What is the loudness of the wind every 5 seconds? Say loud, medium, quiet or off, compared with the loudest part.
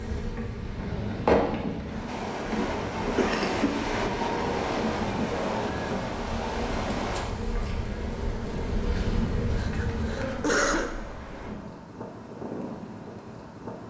loud, loud, medium.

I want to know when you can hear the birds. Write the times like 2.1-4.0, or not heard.
not heard.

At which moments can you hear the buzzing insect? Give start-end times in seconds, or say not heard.
0.0-10.6.